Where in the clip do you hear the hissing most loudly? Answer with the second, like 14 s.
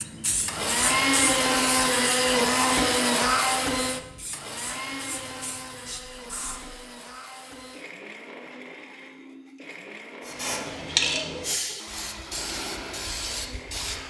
11 s.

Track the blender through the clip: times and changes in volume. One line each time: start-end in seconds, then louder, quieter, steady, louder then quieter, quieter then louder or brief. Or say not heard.
0.0-14.0 quieter.